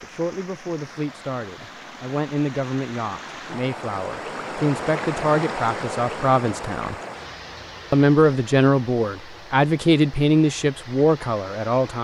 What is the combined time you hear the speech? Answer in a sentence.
You can hear the speech for 11 seconds altogether.